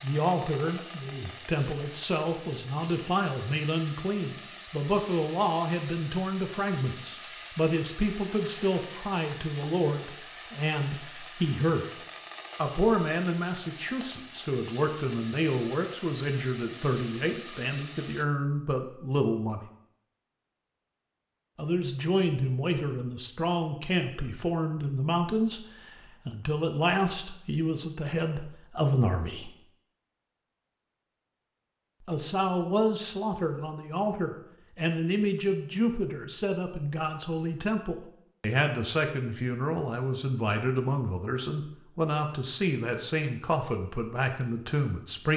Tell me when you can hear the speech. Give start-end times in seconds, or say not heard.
0.0-11.8, 12.6-19.6, 21.6-29.5, 32.0-45.3.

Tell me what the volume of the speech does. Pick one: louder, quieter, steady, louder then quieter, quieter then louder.
steady.